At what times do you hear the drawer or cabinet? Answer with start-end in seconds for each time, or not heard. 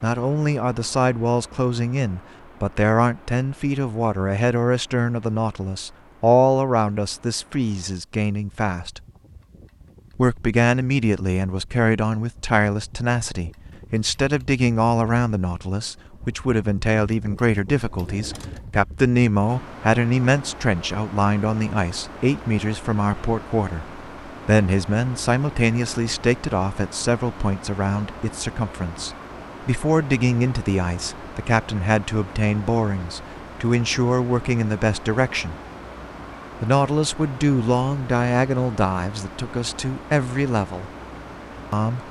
17.9-18.8.